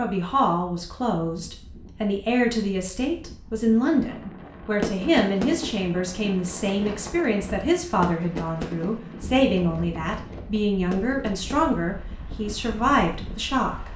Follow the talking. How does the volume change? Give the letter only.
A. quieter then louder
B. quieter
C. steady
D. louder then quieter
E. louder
C.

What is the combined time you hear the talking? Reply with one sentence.
The talking can be heard for 14 seconds in total.